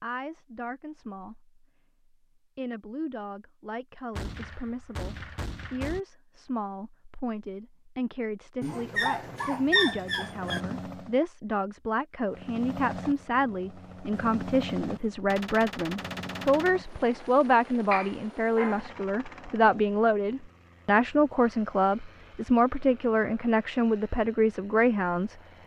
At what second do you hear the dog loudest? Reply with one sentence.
The loudest moment of the dog is at 10 seconds.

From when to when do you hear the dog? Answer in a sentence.
The dog can be heard from 8.6 to 10.6 s and from 17.9 to 19.8 s.